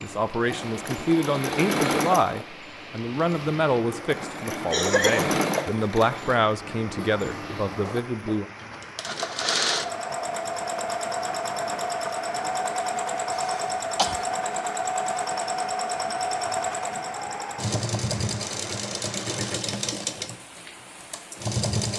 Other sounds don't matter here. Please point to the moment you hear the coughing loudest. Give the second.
5 s.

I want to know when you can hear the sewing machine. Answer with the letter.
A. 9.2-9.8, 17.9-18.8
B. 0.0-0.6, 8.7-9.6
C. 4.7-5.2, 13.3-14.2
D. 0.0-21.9
D.